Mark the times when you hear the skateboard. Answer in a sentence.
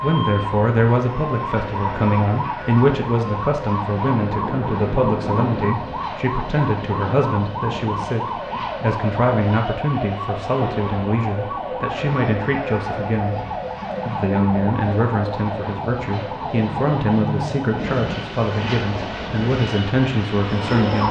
You can't hear the skateboard here.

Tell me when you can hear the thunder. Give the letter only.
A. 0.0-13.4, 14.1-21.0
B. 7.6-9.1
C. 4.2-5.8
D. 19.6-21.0
C.